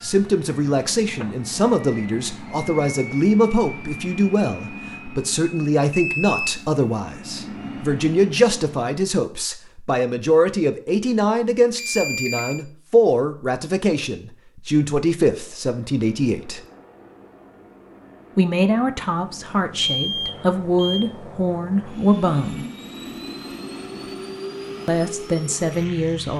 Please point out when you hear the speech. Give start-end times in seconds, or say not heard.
0.0-16.6, 18.4-22.6, 24.9-26.3.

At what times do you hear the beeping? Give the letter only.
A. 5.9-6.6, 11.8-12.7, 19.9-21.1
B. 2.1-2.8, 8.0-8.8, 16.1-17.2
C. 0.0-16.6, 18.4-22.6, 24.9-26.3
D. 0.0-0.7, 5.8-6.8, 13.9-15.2
A.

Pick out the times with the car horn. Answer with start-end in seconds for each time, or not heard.
not heard.